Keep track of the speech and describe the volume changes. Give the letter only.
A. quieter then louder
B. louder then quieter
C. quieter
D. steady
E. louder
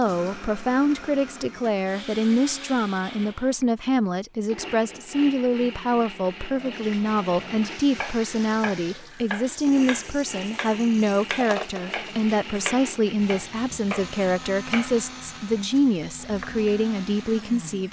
D.